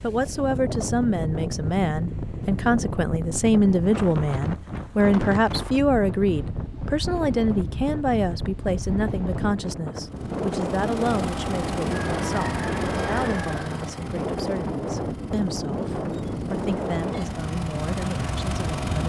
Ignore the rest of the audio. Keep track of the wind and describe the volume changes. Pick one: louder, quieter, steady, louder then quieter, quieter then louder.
steady.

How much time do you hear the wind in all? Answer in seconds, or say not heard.
19 s.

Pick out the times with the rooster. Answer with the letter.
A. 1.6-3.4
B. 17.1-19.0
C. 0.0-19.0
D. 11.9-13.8
D.